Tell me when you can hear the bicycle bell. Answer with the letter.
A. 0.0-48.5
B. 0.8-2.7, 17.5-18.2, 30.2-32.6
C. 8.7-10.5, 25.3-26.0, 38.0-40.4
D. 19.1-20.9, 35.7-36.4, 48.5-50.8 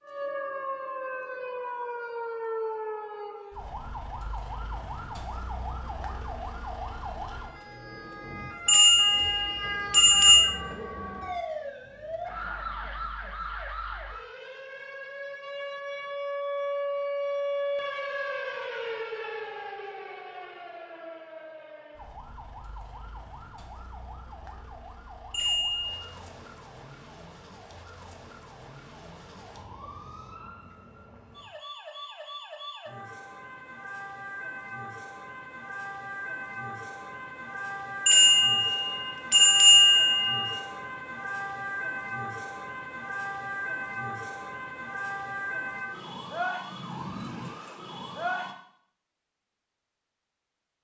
C.